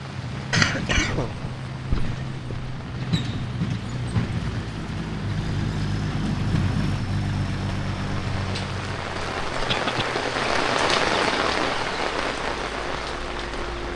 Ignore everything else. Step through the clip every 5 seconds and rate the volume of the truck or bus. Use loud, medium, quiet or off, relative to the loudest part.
loud, loud, medium.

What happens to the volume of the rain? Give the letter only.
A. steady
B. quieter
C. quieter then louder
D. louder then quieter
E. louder
E.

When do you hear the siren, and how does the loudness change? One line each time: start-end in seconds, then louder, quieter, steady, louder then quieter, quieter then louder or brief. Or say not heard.
not heard.